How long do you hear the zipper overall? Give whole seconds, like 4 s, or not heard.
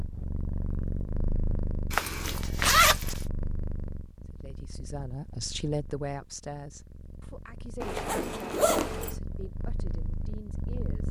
3 s.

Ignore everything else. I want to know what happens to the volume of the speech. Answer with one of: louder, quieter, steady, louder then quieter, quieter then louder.
quieter.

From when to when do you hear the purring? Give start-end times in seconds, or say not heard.
0.0-11.0.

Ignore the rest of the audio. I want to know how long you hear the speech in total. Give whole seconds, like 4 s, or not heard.
7 s.